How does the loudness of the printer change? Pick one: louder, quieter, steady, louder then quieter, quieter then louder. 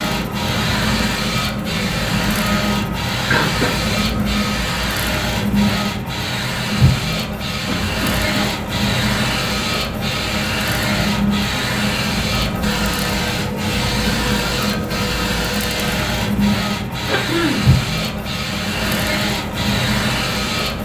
steady.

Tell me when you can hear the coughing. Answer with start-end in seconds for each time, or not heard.
2.9-3.8, 7.7-8.6, 17.1-17.6.